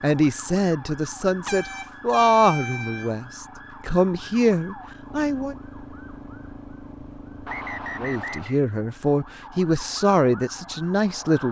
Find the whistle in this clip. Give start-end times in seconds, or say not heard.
7.5-8.6.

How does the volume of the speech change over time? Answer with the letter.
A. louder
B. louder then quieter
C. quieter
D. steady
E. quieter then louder
D.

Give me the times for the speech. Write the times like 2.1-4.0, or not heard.
0.0-5.5, 8.0-11.4.